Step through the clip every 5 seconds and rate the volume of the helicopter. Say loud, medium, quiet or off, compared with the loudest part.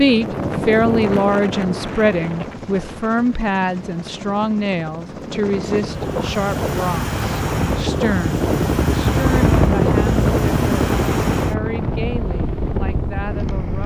quiet, loud, loud.